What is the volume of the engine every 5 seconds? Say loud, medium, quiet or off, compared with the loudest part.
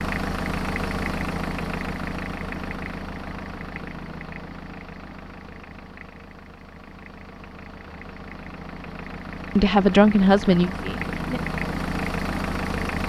loud, medium, loud.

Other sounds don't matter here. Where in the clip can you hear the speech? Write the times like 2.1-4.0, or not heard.
9.6-11.2.